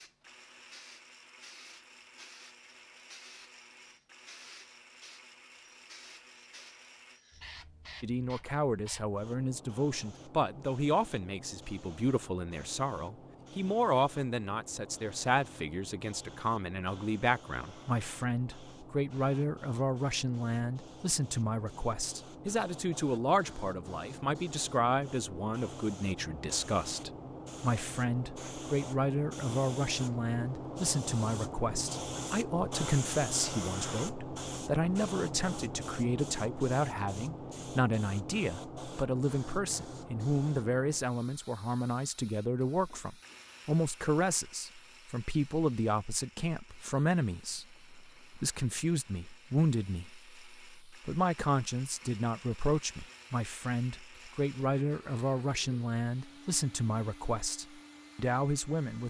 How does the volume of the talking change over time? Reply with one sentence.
The volume of the talking stays about the same.